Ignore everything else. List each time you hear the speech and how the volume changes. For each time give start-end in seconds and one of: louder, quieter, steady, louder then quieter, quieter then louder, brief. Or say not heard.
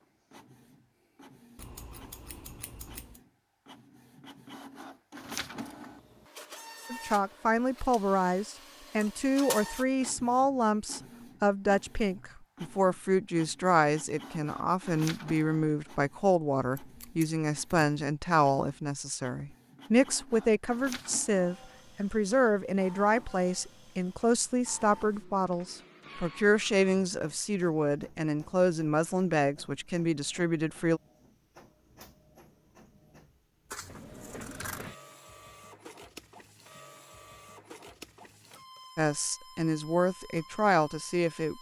6.9-31.0 steady
39.0-41.5 brief.